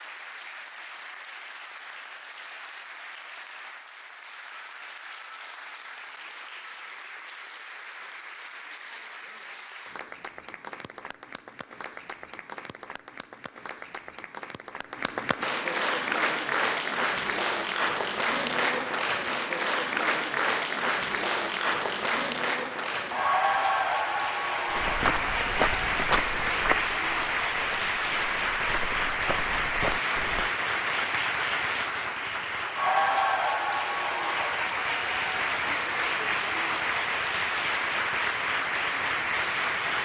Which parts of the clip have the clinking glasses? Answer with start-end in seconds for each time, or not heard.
not heard.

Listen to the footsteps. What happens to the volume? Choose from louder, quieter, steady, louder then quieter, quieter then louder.
quieter then louder.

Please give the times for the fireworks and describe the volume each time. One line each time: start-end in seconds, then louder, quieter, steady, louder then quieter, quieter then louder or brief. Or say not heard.
not heard.